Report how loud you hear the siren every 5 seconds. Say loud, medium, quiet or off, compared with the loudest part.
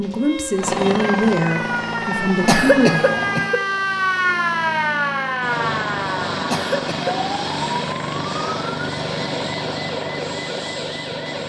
loud, loud, medium.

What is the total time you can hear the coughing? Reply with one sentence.
The coughing can be heard for 2 seconds in total.